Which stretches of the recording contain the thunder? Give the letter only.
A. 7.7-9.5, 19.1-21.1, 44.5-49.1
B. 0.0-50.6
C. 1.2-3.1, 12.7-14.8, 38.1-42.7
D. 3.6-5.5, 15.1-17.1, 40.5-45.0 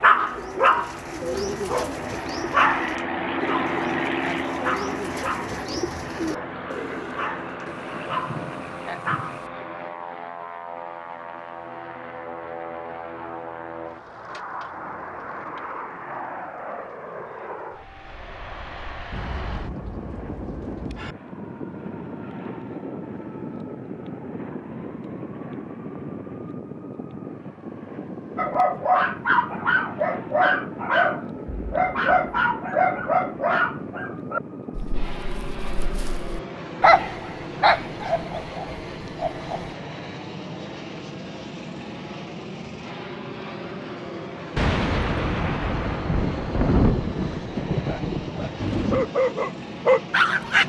A.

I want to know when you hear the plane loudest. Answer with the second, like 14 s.
4 s.